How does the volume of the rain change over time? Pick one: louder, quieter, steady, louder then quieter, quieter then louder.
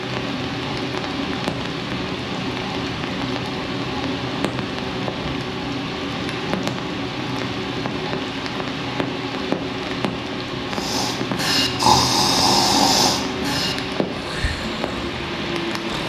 steady.